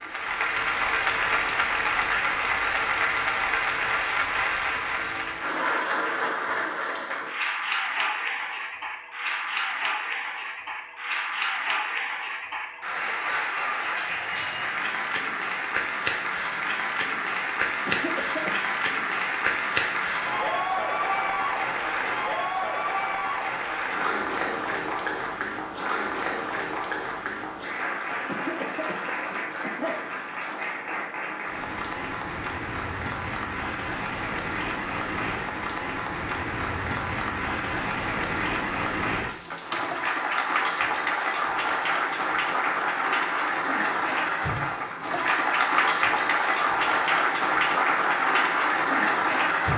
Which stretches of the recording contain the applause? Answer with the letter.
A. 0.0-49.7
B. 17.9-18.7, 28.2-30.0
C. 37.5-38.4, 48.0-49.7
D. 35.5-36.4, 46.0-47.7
A.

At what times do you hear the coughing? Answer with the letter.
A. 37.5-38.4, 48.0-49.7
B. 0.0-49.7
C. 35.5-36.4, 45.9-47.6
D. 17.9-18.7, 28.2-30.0
D.